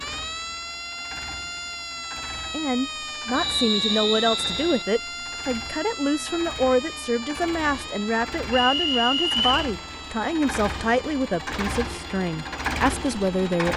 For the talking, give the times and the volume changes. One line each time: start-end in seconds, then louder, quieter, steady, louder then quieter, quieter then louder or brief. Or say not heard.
2.5-13.7 steady.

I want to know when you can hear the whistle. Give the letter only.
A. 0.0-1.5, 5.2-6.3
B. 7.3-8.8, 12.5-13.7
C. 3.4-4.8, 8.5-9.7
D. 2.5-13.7
C.